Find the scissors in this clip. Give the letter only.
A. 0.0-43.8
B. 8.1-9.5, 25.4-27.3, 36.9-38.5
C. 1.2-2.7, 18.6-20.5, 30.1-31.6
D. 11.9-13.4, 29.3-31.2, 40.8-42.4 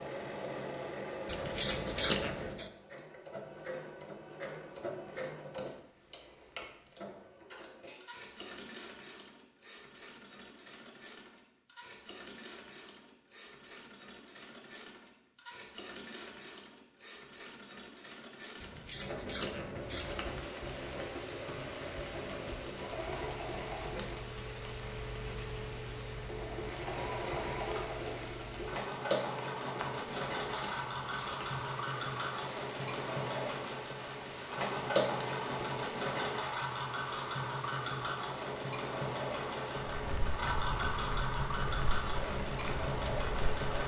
C.